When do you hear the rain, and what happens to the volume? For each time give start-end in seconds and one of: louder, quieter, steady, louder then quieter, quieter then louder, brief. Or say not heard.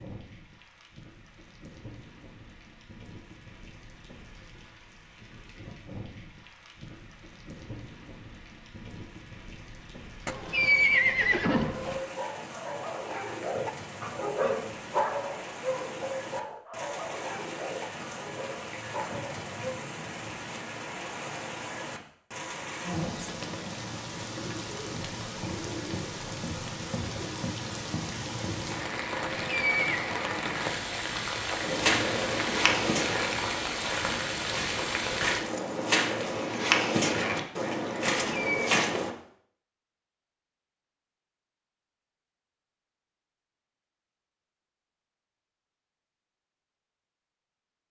0.0-35.5 louder.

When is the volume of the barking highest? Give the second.
15 s.